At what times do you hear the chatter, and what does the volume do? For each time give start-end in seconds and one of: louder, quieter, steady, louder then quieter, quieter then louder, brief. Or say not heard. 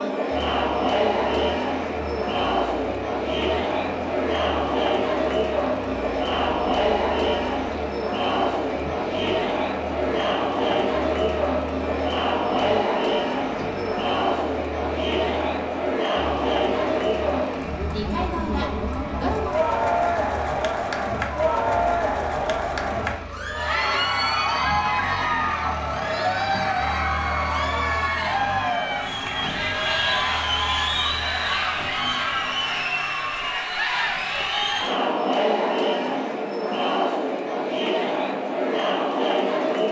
0.0-39.8 steady.